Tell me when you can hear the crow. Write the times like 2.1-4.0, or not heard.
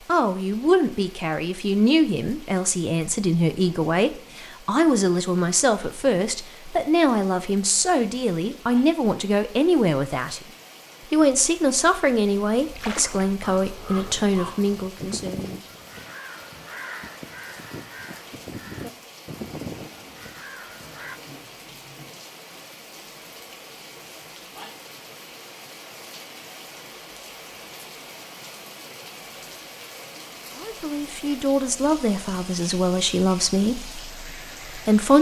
12.7-21.2.